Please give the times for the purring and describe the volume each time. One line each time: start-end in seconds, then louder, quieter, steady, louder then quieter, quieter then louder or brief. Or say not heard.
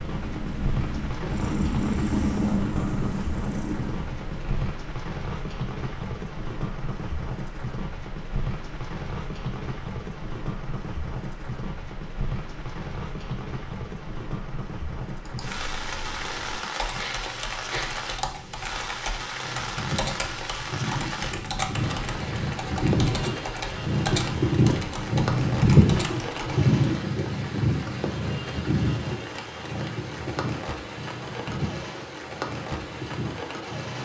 0.0-4.8 louder then quieter
19.4-34.0 louder then quieter.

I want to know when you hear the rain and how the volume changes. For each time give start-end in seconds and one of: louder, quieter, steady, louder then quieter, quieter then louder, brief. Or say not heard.
0.0-34.0 steady.